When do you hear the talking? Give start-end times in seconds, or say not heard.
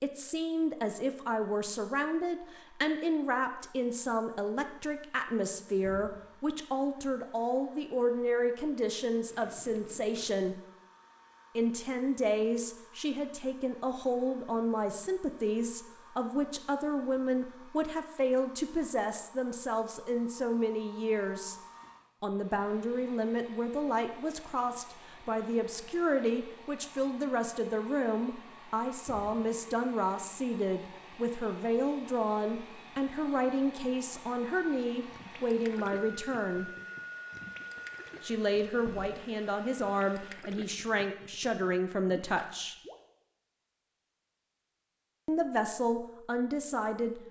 0.0-10.6, 11.6-21.6, 22.2-36.7, 38.2-42.8, 45.2-47.2.